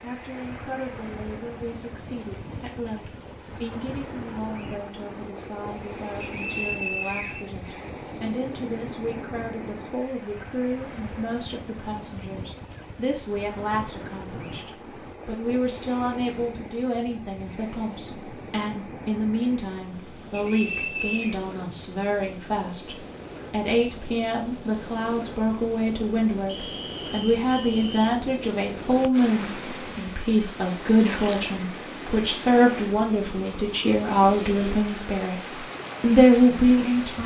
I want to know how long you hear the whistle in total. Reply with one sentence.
The whistle can be heard for 4 seconds in total.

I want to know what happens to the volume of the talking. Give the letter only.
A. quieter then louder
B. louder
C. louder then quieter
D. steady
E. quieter
B.